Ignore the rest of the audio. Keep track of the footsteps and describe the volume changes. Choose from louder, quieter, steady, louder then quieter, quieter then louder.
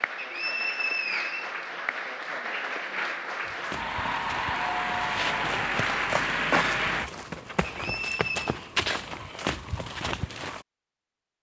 louder.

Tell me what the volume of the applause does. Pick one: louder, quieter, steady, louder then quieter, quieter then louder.
louder.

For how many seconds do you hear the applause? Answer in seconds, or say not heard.
7 s.